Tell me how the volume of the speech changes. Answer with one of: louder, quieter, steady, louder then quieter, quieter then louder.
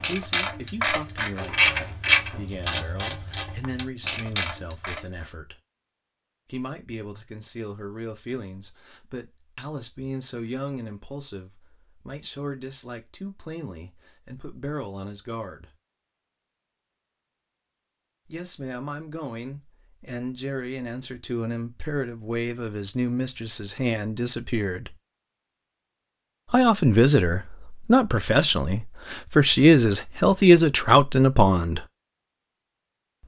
louder.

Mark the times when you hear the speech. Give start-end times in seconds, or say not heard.
0.0-5.5, 6.5-15.7, 18.3-24.9, 26.5-31.9.